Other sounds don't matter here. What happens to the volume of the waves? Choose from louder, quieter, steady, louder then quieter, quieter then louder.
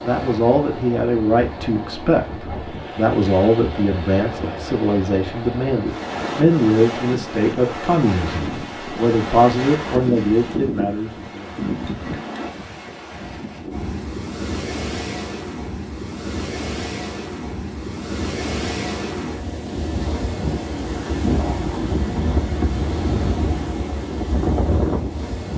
louder.